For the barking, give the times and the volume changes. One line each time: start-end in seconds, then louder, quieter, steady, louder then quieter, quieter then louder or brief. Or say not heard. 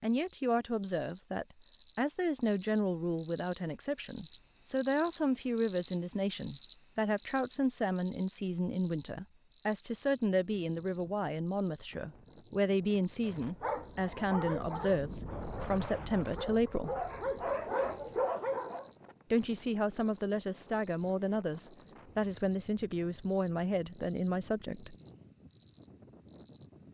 13.2-18.9 quieter then louder.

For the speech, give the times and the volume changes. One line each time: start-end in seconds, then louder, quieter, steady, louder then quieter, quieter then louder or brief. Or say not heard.
0.0-16.9 steady
19.3-24.9 steady.